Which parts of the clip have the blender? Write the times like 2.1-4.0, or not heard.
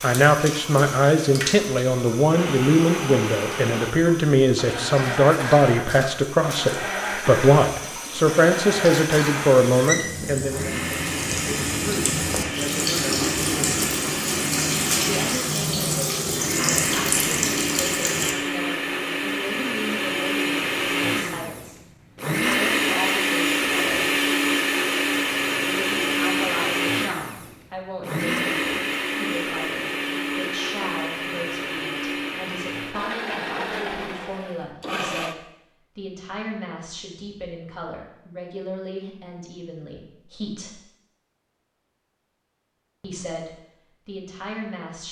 2.2-35.4.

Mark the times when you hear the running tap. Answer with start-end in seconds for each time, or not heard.
0.0-18.4.